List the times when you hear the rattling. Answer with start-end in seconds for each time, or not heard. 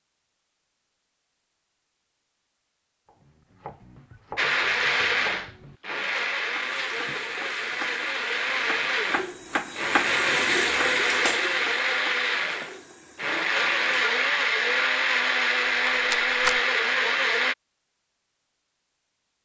15.6-16.6.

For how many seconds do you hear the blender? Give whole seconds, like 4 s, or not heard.
13 s.